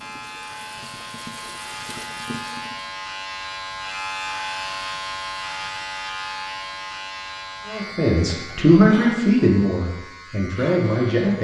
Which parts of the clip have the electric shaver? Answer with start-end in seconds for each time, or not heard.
0.0-11.3.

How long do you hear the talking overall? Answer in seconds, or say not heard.
4 s.